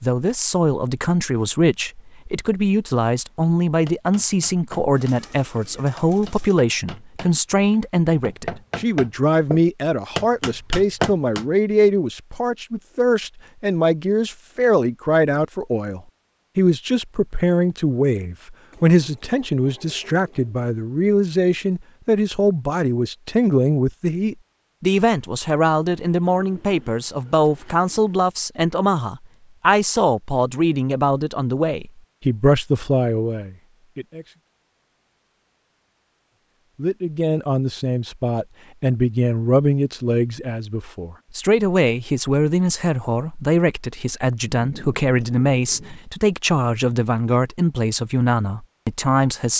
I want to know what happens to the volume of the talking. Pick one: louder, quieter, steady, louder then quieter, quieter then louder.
steady.